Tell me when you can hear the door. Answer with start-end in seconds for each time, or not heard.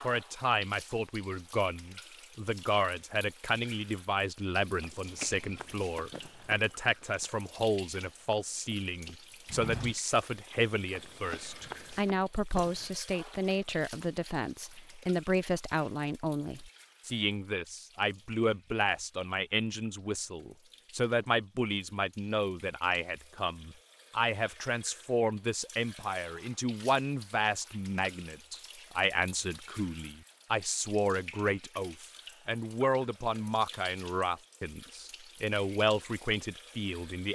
not heard.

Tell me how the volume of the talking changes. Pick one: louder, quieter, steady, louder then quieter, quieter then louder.
steady.